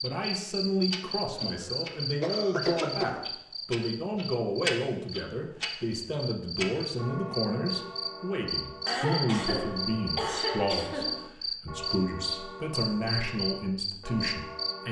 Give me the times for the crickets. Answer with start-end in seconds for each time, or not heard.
0.0-14.8.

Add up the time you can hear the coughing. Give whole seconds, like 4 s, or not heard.
4 s.